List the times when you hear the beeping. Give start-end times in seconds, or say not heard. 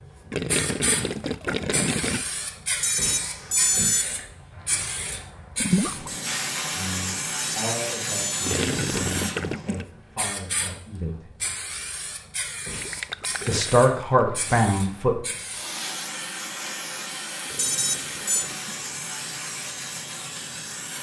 2.8-4.2, 7.4-8.7, 17.6-18.4.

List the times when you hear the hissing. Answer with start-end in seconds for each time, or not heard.
0.0-20.9.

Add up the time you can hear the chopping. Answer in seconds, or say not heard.
not heard.